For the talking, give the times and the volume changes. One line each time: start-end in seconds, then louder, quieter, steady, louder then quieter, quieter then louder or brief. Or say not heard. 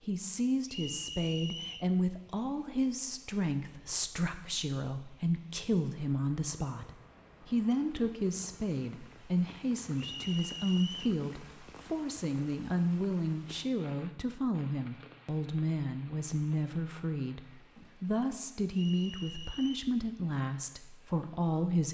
0.0-21.8 steady.